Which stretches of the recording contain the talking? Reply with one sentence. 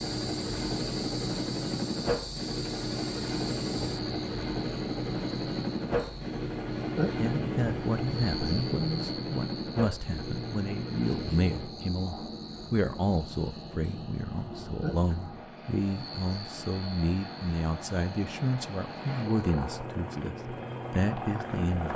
The talking can be heard from 7.2 to 21.9 s.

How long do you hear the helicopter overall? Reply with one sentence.
The helicopter can be heard for 22 seconds in total.